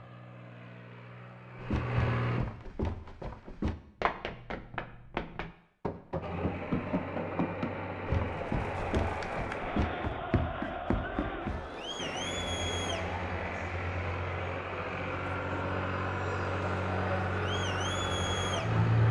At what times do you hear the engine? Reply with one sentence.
You can hear the engine from 0.0 to 2.4 s, from 6.2 to 10.1 s and from 11.9 to 19.0 s.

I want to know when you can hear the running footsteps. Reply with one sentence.
You can hear the running footsteps from 1.6 to 11.7 s.